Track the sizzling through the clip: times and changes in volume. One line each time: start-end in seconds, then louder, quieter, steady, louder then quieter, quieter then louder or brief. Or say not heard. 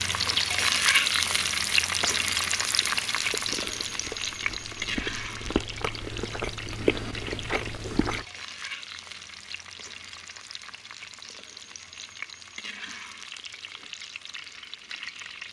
0.0-15.4 quieter.